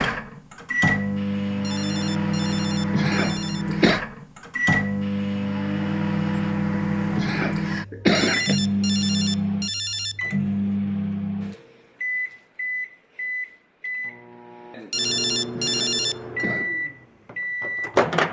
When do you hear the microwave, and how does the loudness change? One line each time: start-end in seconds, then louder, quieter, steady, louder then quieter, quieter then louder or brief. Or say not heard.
0.0-18.2 quieter.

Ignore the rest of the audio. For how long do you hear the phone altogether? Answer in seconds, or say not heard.
6 s.